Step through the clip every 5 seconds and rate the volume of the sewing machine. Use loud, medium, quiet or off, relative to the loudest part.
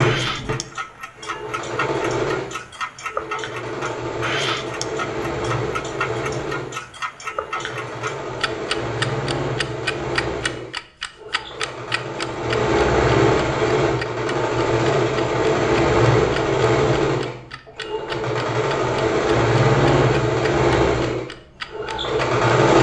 medium, medium, loud, loud, loud.